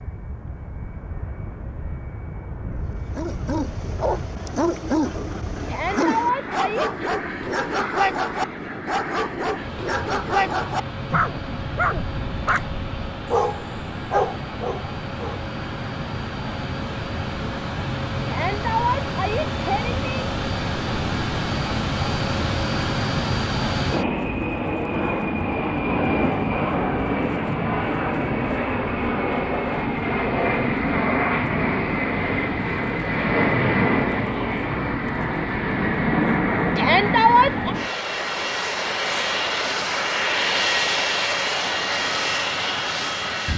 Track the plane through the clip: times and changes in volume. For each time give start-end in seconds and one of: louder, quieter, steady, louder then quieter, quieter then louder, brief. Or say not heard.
0.0-43.5 louder.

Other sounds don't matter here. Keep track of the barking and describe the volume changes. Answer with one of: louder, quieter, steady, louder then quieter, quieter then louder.
steady.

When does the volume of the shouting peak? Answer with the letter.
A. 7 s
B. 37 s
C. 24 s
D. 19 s
B.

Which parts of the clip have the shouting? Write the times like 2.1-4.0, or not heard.
5.7-7.2, 18.2-20.0, 36.8-37.8.